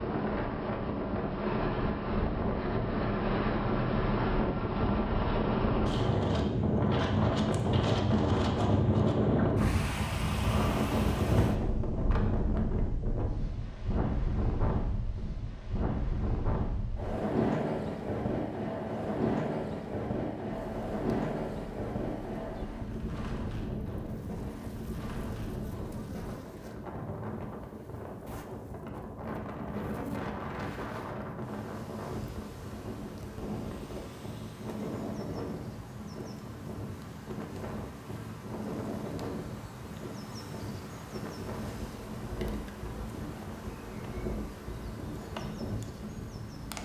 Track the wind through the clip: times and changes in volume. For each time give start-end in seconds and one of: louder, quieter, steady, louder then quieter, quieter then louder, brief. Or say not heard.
0.0-46.7 quieter.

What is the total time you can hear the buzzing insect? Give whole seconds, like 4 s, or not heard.
26 s.